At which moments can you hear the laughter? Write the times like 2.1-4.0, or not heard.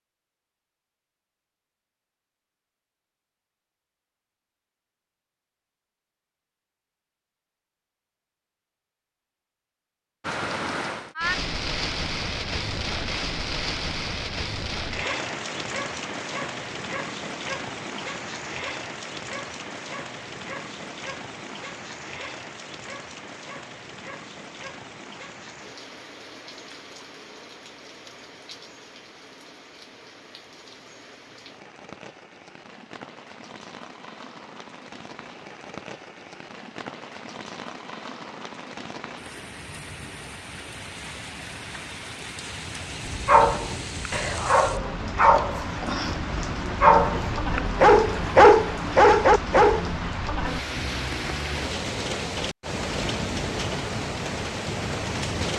not heard.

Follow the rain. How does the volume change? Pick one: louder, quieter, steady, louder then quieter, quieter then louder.
quieter then louder.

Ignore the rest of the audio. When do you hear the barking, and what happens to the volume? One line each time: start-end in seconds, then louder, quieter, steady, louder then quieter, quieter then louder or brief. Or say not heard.
43.0-49.9 louder.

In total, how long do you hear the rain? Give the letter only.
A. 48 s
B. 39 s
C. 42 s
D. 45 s
D.